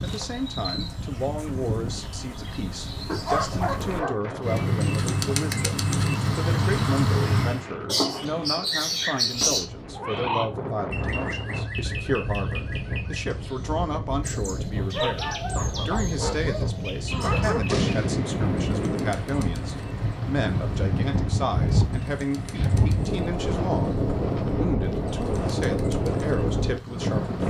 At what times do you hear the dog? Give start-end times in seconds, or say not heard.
3.0-4.2, 14.9-17.9.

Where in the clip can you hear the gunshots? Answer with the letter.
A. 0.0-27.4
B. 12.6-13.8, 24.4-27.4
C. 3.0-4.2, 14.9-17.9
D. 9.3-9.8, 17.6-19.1
D.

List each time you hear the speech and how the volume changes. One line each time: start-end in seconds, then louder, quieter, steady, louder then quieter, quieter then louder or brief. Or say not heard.
0.0-27.4 steady.